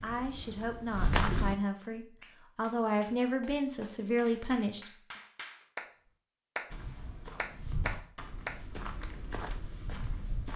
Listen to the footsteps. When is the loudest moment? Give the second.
1 s.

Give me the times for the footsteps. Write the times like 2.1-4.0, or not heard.
0.0-1.6, 6.7-10.5.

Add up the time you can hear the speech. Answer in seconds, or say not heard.
5 s.